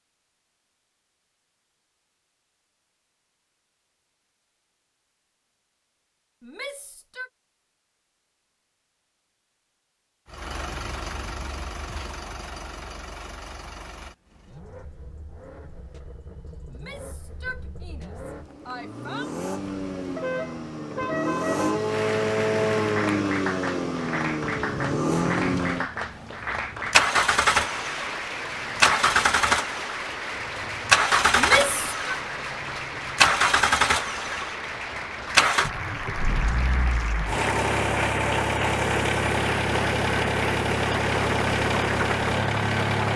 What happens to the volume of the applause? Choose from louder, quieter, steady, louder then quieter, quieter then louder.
steady.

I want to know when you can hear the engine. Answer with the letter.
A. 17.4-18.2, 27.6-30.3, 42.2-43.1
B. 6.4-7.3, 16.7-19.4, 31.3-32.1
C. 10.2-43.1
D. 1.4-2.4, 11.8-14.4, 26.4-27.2
C.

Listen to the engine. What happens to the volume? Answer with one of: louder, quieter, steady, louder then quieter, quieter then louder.
louder.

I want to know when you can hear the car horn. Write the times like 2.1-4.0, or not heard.
20.1-21.9.